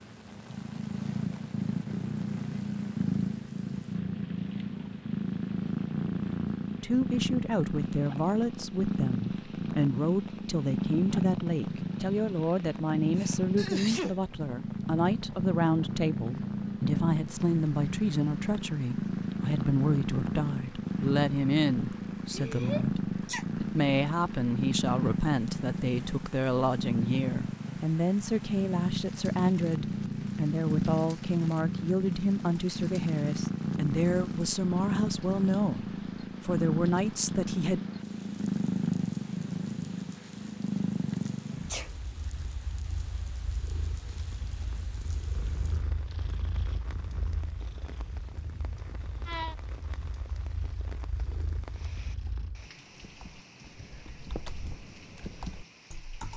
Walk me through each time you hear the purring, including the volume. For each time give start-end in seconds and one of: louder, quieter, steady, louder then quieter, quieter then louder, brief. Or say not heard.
0.0-52.7 quieter.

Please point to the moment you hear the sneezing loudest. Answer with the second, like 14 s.
14 s.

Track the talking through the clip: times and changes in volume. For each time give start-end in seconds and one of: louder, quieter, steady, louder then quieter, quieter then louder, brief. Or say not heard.
6.8-37.8 steady.